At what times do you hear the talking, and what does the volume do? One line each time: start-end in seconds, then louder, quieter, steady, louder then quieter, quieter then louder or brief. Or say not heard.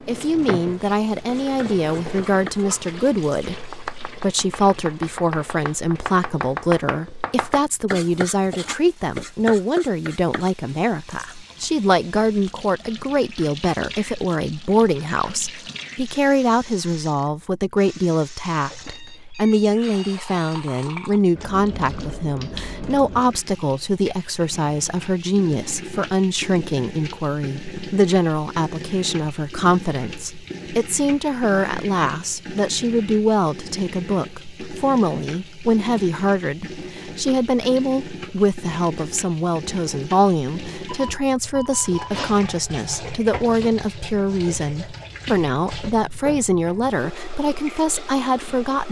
0.1-48.8 steady.